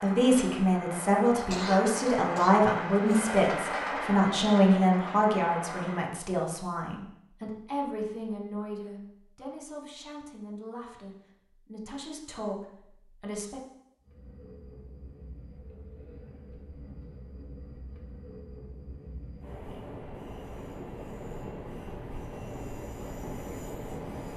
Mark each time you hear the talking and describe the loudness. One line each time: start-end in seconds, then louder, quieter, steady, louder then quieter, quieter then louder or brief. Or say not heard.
0.0-13.6 quieter.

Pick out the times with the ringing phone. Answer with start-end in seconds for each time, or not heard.
not heard.